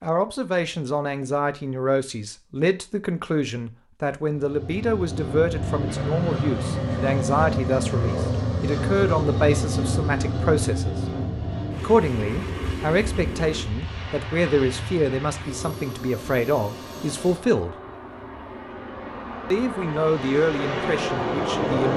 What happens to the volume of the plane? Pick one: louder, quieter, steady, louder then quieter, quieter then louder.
quieter then louder.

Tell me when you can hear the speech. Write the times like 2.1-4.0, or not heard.
0.0-10.9, 11.8-17.8, 19.5-21.9.